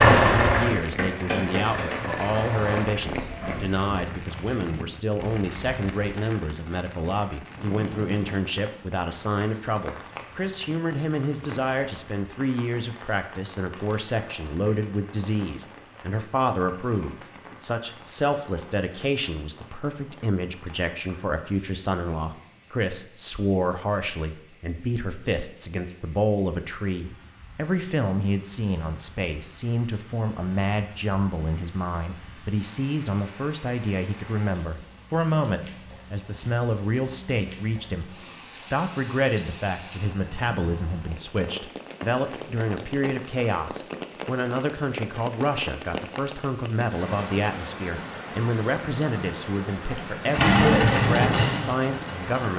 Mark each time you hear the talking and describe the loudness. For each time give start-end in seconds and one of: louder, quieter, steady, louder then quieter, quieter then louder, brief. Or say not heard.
0.2-52.5 steady.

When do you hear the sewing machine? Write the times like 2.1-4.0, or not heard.
0.0-3.9, 50.3-52.5.